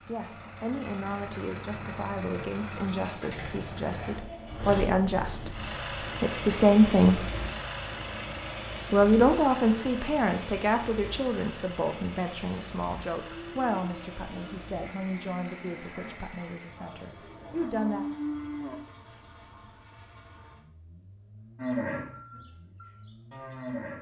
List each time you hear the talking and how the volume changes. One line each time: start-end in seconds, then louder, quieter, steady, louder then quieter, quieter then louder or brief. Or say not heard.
0.1-7.2 louder
8.9-18.1 quieter.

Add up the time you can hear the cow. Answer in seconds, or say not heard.
8 s.